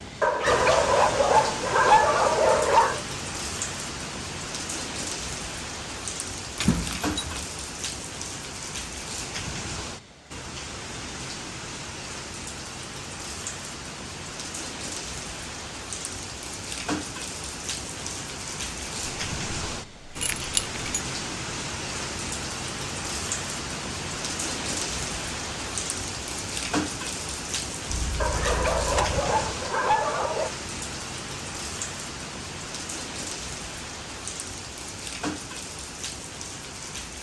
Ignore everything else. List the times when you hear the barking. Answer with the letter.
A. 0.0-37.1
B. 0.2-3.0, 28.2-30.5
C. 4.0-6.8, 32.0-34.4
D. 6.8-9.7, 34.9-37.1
B.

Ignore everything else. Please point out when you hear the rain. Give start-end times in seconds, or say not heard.
0.0-37.1.